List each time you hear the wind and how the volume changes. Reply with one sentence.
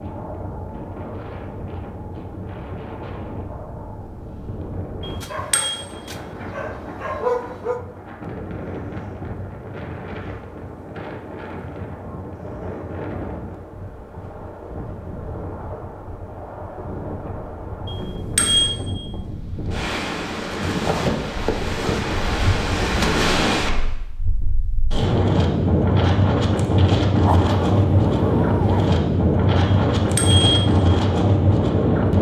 You can hear the wind from 0.0 to 32.1 s, getting louder.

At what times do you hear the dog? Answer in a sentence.
The dog can be heard from 5.2 to 7.8 s and from 27.2 to 28.9 s.